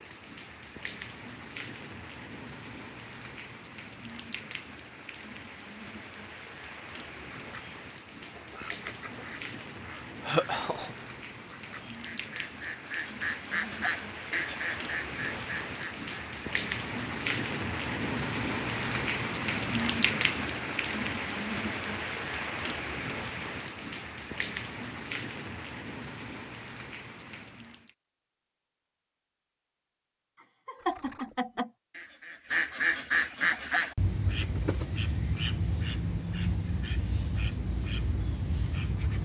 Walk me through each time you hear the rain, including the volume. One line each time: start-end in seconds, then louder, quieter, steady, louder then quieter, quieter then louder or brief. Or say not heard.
0.0-27.9 louder then quieter.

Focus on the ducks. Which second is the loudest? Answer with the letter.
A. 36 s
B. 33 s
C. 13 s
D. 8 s
B.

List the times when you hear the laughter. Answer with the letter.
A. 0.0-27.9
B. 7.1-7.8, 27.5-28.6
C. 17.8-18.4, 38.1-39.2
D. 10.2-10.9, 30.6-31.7
D.